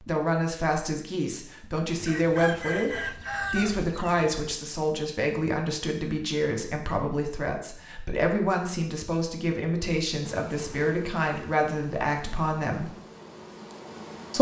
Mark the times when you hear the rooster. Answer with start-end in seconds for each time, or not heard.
1.9-4.3.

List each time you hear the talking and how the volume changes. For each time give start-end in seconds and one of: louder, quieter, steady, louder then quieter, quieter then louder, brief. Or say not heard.
0.0-12.9 steady.